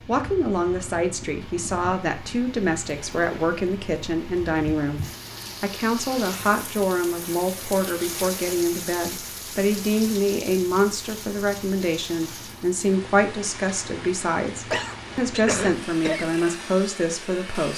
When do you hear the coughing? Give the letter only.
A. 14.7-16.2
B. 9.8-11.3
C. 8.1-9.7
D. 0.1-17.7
A.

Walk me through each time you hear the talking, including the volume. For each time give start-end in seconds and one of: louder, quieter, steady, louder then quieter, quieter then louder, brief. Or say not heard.
0.1-17.7 steady.